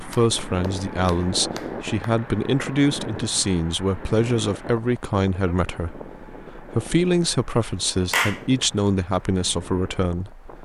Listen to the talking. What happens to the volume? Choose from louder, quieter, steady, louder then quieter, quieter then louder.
steady.